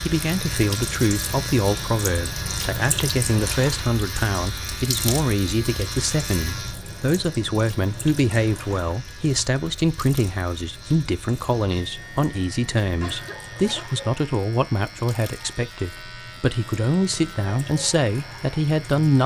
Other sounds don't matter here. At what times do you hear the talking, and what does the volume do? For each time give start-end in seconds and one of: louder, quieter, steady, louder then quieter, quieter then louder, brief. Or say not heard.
0.0-19.2 steady.